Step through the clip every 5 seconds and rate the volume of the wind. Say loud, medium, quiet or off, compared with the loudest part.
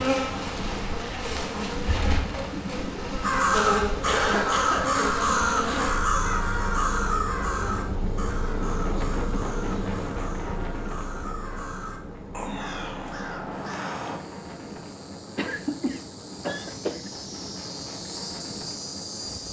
loud, loud, loud, medium.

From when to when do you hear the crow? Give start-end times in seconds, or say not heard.
3.2-14.2.